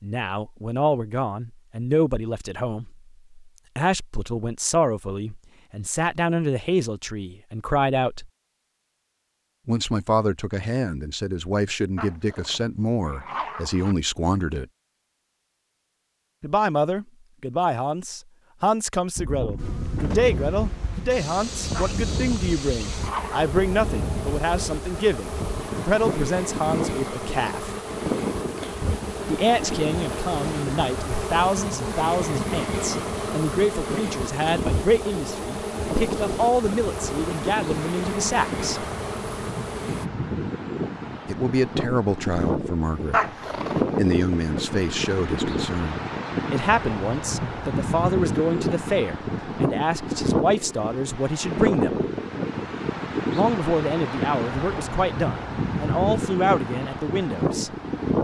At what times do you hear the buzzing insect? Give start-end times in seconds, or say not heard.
19.6-40.1.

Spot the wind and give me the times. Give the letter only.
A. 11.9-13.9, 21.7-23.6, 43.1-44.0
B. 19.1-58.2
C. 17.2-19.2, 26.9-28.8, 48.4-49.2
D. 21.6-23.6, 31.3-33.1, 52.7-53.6
B.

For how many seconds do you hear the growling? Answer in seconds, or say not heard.
5 s.